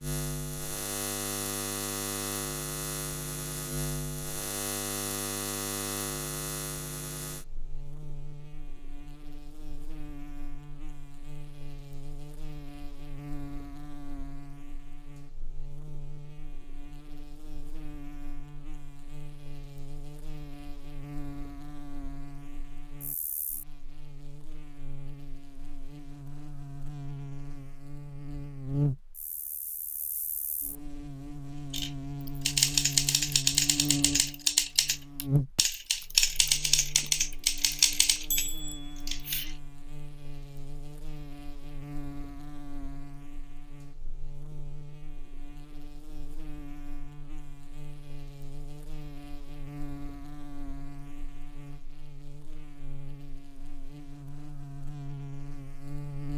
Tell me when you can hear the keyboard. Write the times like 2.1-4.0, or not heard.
31.7-39.5.